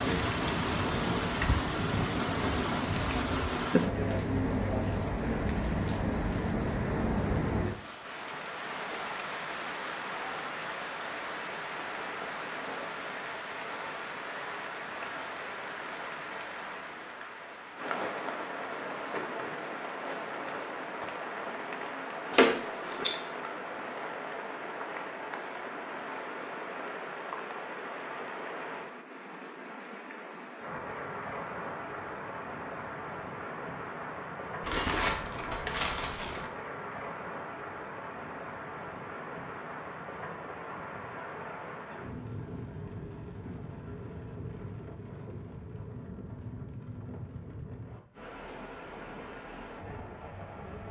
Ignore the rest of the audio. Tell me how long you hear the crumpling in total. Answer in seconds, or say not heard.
3 s.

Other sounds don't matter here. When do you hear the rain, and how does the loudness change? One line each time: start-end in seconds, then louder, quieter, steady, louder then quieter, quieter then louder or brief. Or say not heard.
0.0-50.8 quieter.